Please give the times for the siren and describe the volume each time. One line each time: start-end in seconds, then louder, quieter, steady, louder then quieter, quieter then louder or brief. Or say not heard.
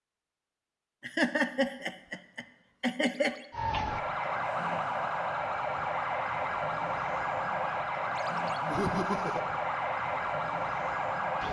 3.5-11.4 steady.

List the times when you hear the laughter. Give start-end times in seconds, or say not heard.
1.0-3.4, 8.6-9.4.